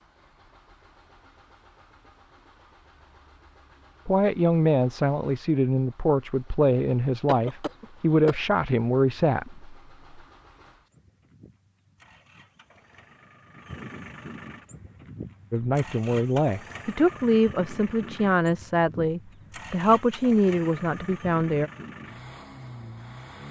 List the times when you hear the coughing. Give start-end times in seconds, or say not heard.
7.2-8.3.